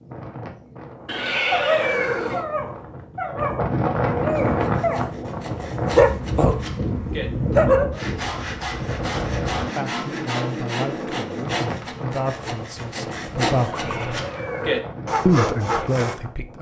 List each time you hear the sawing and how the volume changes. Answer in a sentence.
The sawing can be heard from 4.3 to 16.2 s, getting louder.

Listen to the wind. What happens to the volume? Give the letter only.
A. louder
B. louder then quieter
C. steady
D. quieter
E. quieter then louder
B.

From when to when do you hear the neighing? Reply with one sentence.
You can hear the neighing from 1.1 to 2.5 s and from 13.6 to 14.9 s.